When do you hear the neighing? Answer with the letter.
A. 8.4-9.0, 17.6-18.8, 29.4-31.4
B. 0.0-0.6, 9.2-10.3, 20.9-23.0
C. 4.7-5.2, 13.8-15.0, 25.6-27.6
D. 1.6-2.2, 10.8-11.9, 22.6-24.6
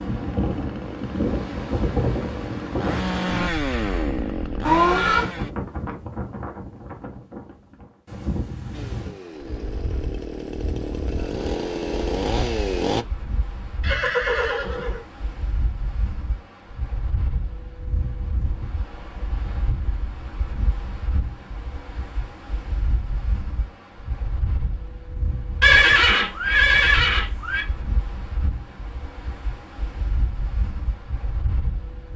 C.